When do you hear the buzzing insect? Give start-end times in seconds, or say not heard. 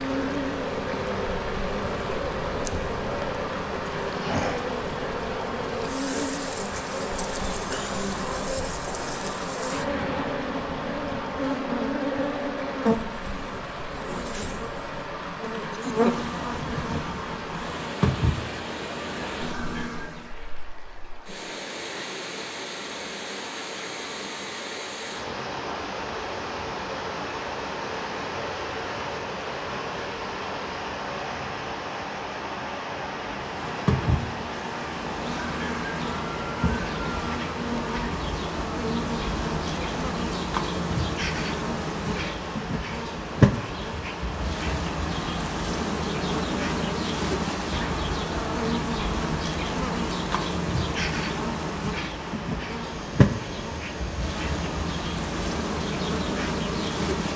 0.0-20.4, 33.5-57.3.